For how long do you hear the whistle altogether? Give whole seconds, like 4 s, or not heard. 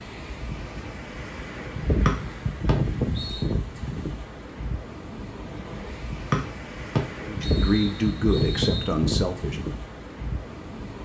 4 s.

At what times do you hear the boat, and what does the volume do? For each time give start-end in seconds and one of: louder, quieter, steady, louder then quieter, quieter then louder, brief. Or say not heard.
not heard.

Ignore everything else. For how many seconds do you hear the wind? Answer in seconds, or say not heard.
11 s.